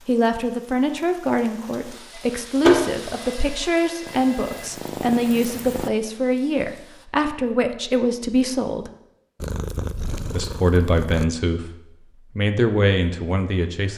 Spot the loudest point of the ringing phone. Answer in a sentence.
The loudest moment of the ringing phone is at 3 seconds.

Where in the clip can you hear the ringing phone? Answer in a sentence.
You can hear the ringing phone from 2.1 to 4.7 s.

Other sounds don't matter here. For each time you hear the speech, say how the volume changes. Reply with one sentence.
You can hear the speech from 0.1 to 8.9 s, at a steady volume; briefly from 10.3 to 11.7 s; and briefly from 12.3 to 13.9 s.